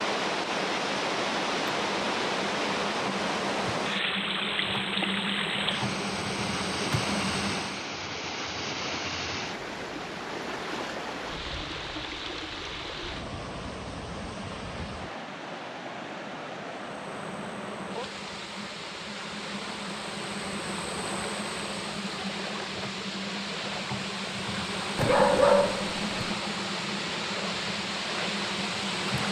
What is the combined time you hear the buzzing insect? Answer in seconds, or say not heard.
20 s.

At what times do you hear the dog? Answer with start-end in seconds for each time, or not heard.
24.9-26.1.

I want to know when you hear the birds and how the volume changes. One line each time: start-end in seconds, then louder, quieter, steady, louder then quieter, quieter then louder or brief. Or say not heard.
not heard.